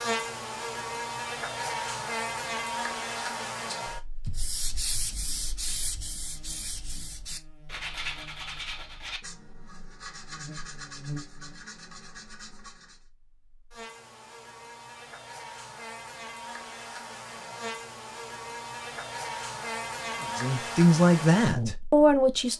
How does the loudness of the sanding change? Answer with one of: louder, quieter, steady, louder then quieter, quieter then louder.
quieter.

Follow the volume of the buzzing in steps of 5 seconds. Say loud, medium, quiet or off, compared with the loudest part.
loud, quiet, medium, medium, loud.